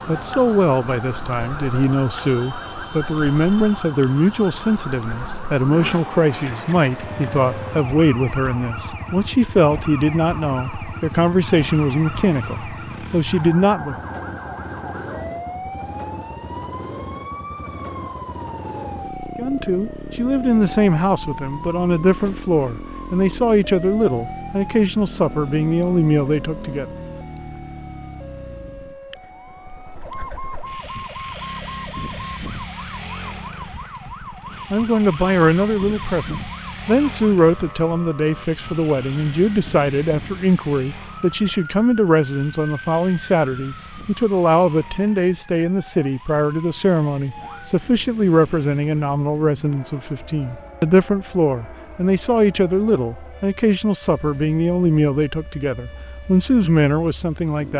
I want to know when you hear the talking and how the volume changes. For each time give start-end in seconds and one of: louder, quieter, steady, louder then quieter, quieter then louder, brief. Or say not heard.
0.1-13.9 steady
19.4-26.9 steady
34.7-57.7 steady.